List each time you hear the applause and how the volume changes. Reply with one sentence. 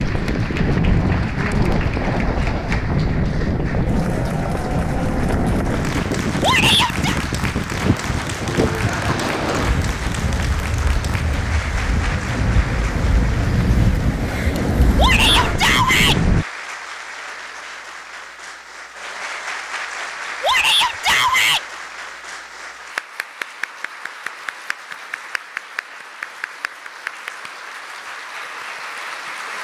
The applause can be heard from 0.0 to 29.5 s, at a steady volume.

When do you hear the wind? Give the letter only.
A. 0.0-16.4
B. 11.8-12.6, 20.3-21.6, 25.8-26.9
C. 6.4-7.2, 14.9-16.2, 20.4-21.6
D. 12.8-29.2
A.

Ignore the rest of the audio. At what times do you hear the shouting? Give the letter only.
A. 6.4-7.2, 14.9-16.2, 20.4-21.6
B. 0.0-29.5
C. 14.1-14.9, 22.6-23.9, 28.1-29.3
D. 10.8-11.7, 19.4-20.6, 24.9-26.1
A.